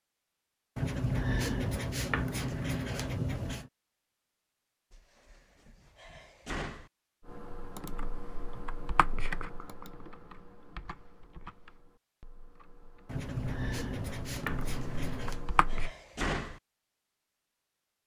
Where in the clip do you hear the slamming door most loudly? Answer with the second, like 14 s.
16 s.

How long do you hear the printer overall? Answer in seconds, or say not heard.
not heard.